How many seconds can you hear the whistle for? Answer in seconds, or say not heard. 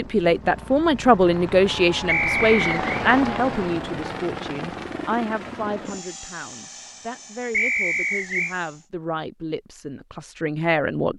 2 s.